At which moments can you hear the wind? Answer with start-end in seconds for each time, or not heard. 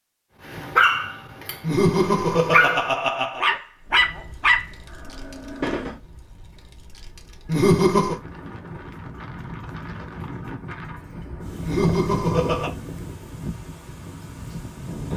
3.8-15.1.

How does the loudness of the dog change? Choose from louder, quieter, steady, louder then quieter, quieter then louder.
louder then quieter.